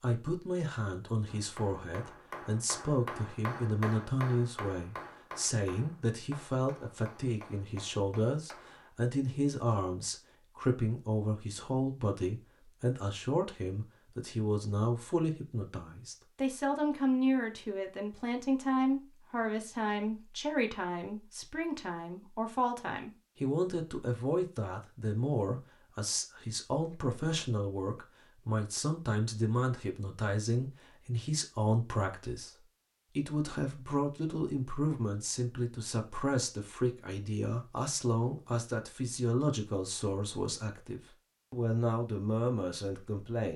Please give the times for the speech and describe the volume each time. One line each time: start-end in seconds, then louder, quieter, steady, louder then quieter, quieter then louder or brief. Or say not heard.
0.0-43.5 steady.